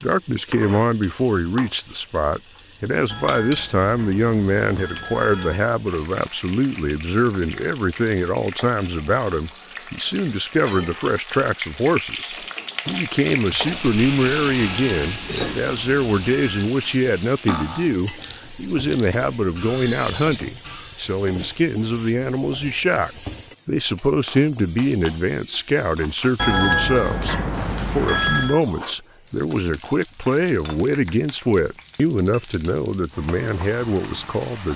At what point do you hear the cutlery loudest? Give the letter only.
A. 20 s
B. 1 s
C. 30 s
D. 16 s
A.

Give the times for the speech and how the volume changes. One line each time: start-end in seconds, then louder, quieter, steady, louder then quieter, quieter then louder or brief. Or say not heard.
0.0-34.7 steady.